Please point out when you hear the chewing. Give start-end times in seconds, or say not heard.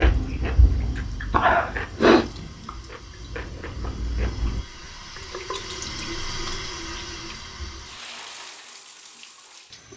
0.0-4.7.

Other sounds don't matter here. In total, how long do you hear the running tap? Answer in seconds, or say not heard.
10 s.